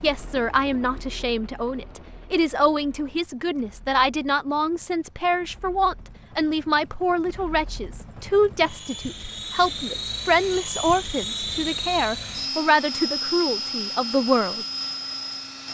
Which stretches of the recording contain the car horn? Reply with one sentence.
You can't hear the car horn here.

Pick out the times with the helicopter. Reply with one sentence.
You can hear the helicopter from 0.0 to 15.6 s.